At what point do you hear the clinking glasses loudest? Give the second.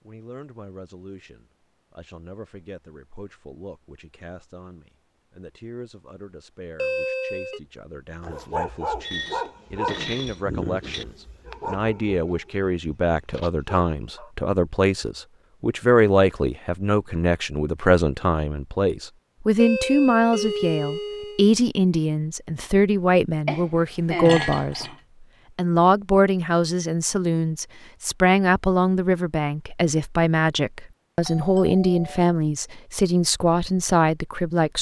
24 s.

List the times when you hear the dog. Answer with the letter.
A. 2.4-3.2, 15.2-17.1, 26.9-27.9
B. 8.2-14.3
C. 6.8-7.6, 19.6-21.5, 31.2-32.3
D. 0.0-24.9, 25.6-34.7
B.